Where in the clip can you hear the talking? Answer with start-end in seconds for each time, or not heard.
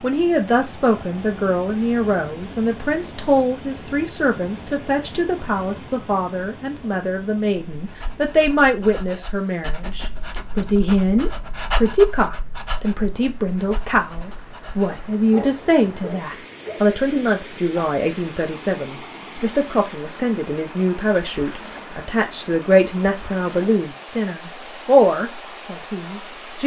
0.0-26.6.